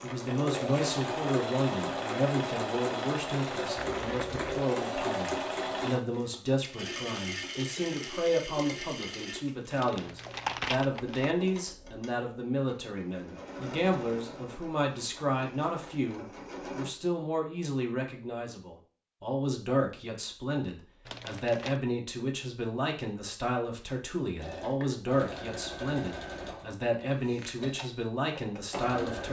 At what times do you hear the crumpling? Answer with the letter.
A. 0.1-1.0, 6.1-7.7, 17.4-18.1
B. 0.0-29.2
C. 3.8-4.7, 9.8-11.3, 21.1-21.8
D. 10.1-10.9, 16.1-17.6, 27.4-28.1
C.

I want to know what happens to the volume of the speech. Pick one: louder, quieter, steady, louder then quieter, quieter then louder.
steady.